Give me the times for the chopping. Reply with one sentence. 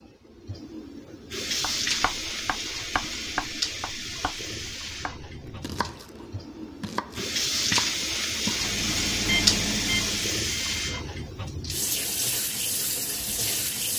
The chopping can be heard from 1.6 to 8.7 s.